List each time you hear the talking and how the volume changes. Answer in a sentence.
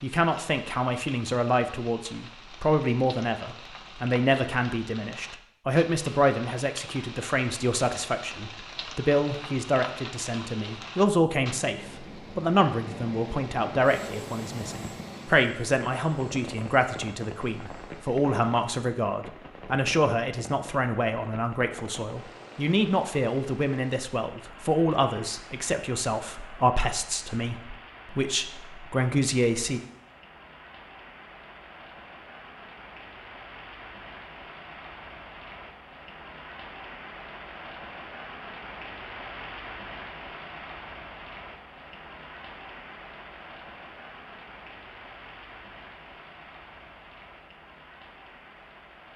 The talking can be heard from 0.0 to 29.8 s, at a steady volume.